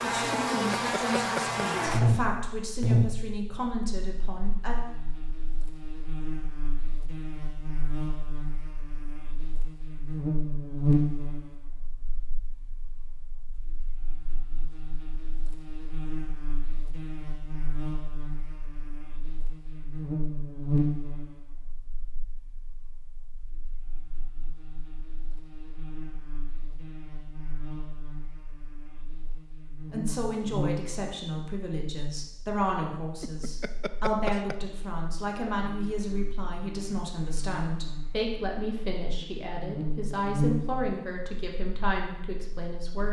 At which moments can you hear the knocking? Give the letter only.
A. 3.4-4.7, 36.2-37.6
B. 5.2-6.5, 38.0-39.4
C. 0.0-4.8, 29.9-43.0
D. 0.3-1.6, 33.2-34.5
D.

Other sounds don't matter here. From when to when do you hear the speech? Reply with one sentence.
The speech can be heard from 0.0 to 4.8 s and from 29.9 to 43.0 s.